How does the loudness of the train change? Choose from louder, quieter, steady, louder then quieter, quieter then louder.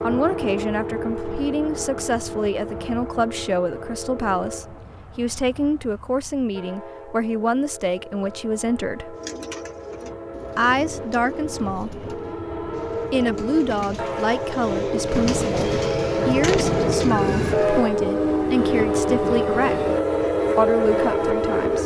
quieter then louder.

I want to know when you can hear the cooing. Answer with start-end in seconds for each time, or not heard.
9.1-17.9.